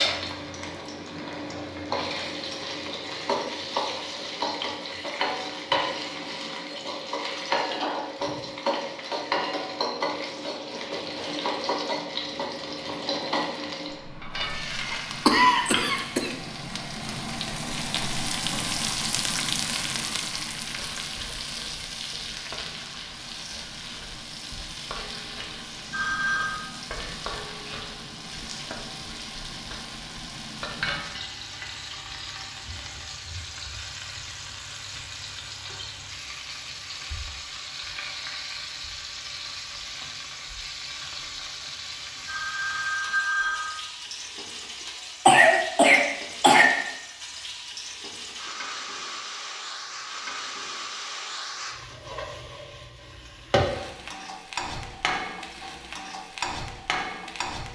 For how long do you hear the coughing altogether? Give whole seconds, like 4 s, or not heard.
3 s.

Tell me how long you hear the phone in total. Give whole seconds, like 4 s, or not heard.
2 s.